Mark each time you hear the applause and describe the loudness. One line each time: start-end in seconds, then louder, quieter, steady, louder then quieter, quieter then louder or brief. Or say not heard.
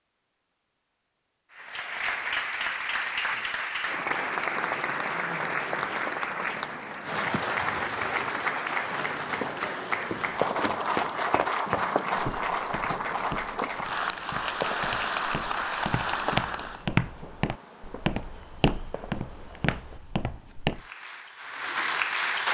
1.5-16.9 steady
20.7-22.4 brief.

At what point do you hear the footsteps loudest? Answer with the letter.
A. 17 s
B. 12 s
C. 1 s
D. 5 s
A.